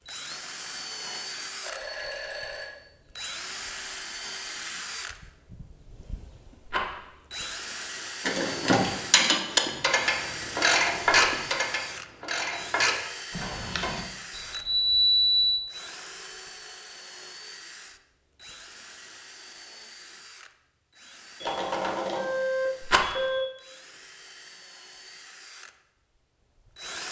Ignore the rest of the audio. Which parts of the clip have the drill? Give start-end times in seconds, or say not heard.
0.1-27.0.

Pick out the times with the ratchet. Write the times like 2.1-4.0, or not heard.
8.2-14.0.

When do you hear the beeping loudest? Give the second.
15 s.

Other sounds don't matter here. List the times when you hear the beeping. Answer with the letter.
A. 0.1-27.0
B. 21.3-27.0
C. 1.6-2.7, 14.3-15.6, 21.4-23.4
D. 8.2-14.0
C.